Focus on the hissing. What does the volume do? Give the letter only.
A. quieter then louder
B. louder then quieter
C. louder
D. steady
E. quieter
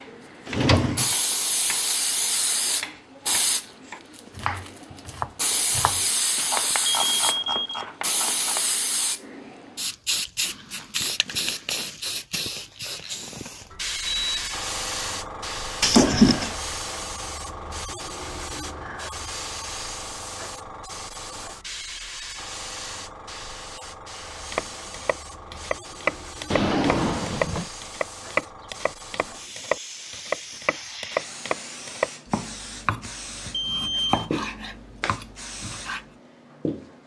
E.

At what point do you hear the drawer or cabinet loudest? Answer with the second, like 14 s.
16 s.